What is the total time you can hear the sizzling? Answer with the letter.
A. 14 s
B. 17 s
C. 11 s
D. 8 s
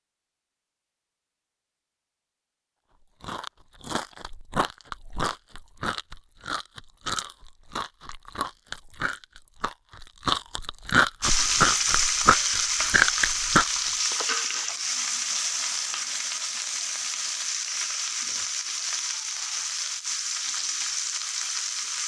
C.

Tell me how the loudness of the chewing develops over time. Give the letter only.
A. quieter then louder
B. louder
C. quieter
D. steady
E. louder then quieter
B.